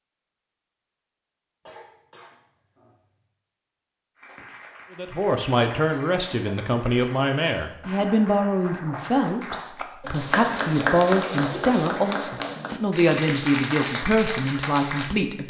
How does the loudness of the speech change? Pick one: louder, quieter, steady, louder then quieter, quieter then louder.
steady.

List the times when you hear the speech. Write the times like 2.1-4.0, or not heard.
5.0-15.4.